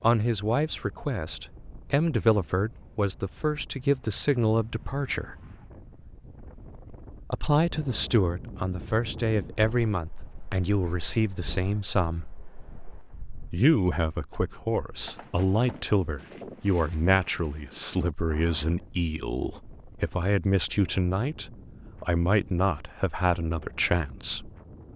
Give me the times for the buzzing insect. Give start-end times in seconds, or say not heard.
not heard.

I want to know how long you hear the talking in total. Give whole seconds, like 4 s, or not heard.
21 s.